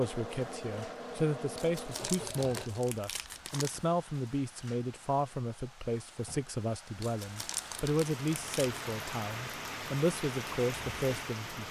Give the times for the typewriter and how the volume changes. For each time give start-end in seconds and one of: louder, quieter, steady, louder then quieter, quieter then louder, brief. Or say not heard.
not heard.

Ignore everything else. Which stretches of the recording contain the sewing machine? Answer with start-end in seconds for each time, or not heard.
0.0-2.7.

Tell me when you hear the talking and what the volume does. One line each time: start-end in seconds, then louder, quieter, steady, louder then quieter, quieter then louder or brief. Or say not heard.
0.0-11.6 steady.